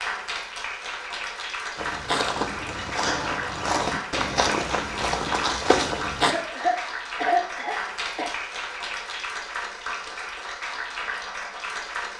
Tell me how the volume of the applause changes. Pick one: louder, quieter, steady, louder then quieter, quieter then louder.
steady.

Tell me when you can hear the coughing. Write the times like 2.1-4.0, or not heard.
6.2-8.3.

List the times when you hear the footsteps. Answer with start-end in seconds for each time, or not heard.
1.8-6.3.